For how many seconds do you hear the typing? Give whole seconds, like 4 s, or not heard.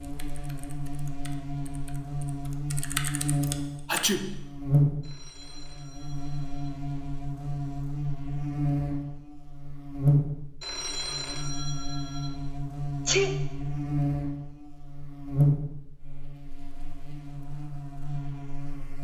4 s.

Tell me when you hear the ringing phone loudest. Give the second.
11 s.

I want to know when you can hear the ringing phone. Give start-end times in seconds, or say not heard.
5.0-6.7, 10.6-12.3.